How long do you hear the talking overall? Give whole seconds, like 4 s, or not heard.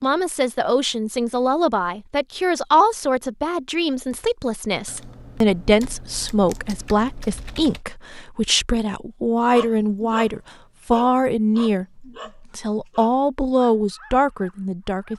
15 s.